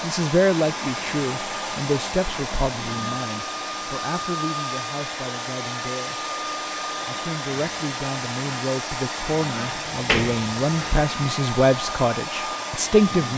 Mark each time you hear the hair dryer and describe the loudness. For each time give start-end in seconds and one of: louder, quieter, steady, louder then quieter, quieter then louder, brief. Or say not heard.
0.0-13.3 steady.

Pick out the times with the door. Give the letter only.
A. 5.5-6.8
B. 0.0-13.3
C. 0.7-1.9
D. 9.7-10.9
D.